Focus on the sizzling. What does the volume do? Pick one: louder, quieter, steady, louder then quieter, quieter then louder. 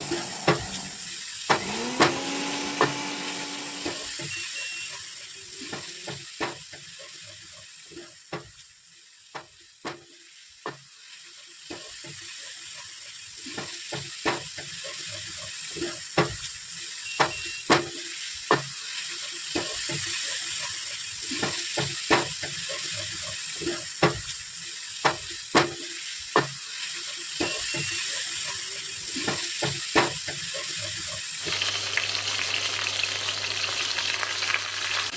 quieter then louder.